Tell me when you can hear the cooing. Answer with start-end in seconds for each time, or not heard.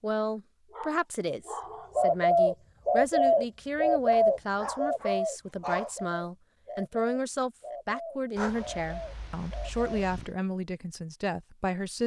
1.9-9.9.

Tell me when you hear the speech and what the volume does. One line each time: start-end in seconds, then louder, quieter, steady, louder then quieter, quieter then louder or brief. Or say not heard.
0.0-12.0 steady.